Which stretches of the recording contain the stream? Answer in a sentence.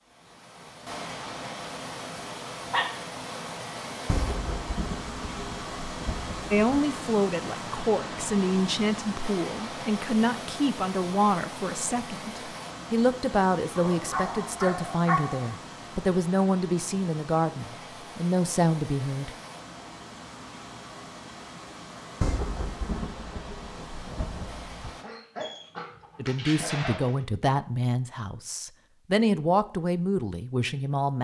You can hear the stream from 0.0 to 25.1 s.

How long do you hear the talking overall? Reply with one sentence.
You can hear the talking for 18 seconds altogether.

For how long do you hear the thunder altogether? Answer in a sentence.
The thunder can be heard for 5 seconds in total.